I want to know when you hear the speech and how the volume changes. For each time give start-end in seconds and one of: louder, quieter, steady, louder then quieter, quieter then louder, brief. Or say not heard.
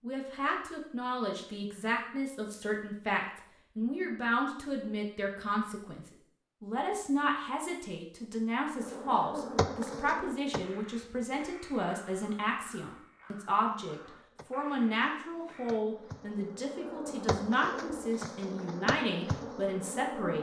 0.0-20.3 steady.